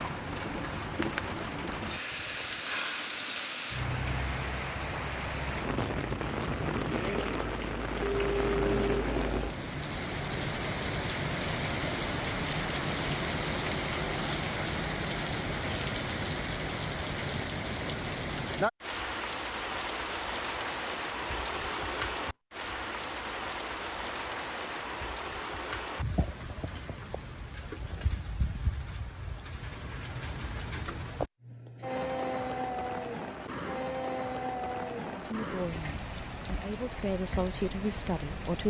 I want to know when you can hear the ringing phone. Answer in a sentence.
The ringing phone can be heard from 8.0 to 9.1 s.